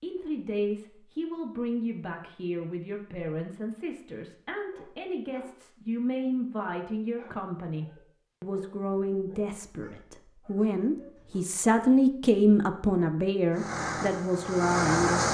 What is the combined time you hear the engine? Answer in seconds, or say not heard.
2 s.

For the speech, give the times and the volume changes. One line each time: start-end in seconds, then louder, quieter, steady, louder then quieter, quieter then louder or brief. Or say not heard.
0.0-15.2 louder.